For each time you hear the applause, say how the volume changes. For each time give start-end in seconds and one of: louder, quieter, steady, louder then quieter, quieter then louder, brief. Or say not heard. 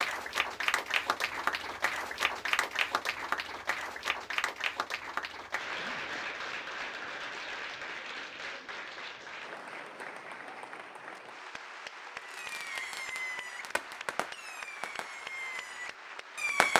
0.0-16.7 quieter.